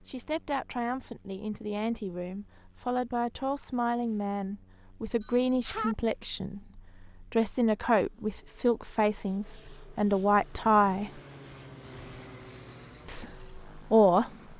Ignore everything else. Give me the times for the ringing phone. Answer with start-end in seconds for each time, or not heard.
5.2-6.0.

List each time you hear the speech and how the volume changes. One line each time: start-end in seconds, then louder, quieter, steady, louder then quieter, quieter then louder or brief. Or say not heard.
0.0-11.2 louder
13.1-14.3 brief.